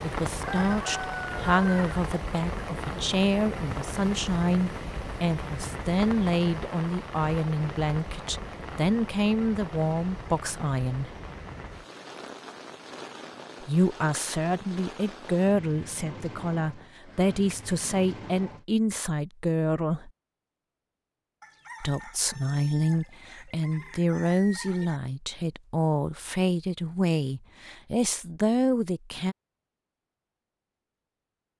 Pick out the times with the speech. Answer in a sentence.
The speech can be heard from 0.0 to 11.2 s, from 13.6 to 20.1 s and from 21.8 to 29.4 s.